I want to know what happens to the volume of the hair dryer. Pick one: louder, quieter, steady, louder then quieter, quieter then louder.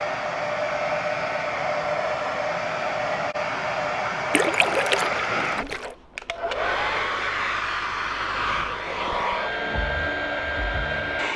steady.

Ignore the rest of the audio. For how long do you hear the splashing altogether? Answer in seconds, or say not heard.
2 s.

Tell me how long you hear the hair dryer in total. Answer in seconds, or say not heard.
11 s.